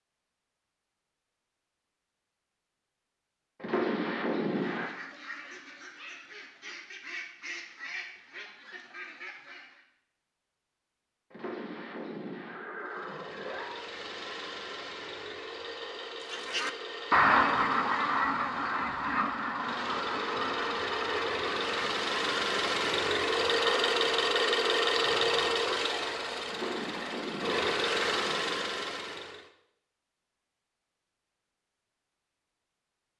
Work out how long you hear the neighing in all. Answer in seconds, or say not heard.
6 s.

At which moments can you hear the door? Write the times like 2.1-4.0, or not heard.
not heard.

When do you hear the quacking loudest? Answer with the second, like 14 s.
17 s.